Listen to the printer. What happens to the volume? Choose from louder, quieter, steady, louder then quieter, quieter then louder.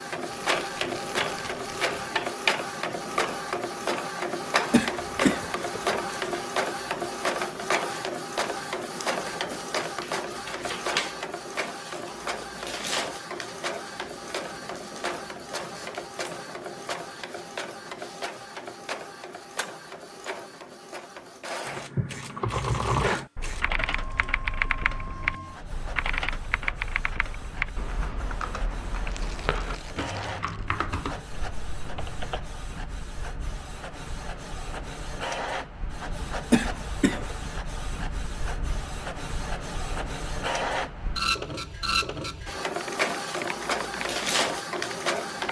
quieter then louder.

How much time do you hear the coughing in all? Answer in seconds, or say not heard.
2 s.